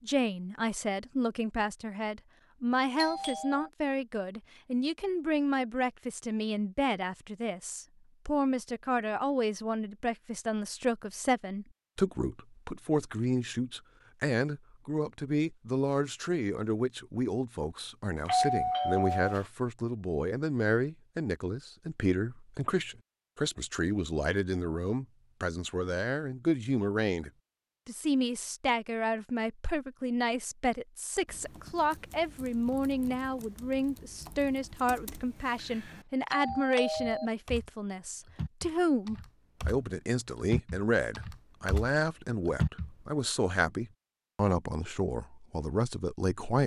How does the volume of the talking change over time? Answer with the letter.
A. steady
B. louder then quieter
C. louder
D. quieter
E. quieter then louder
A.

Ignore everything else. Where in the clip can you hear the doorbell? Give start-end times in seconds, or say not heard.
3.0-3.7, 18.2-19.4, 36.3-37.3.